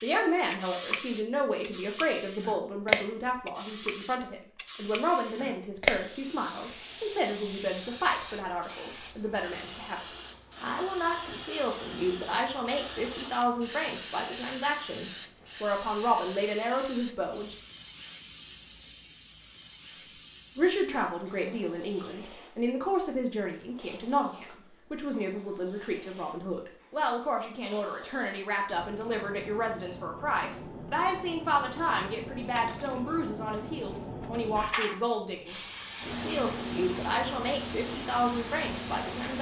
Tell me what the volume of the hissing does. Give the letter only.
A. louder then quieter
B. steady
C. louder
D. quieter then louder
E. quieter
D.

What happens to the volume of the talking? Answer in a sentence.
The volume of the talking stays about the same.